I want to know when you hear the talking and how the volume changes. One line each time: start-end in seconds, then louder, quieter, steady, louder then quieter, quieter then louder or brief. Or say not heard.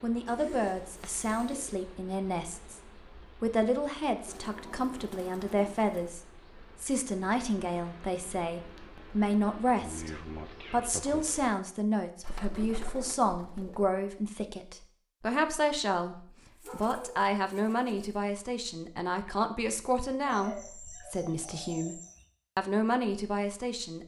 0.0-2.8 brief
3.4-6.2 brief
6.8-24.0 steady.